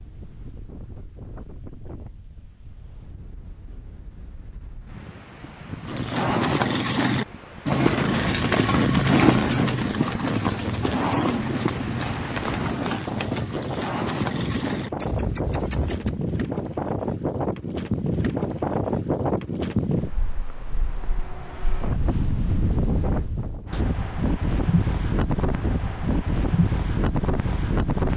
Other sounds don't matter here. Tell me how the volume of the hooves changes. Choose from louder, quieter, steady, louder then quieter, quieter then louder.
quieter.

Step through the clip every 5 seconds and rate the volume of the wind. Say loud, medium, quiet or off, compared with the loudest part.
quiet, quiet, medium, loud, loud, loud.